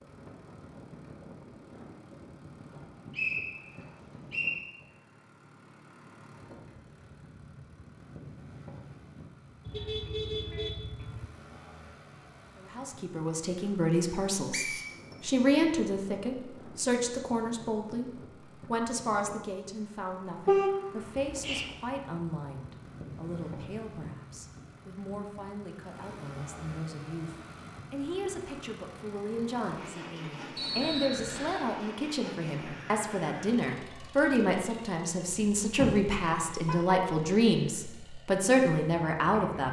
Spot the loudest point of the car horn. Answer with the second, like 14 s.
21 s.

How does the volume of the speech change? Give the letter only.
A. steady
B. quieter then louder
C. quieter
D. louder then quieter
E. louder
B.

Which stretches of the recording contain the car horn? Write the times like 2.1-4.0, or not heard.
9.7-11.2, 20.4-21.7, 35.4-37.0.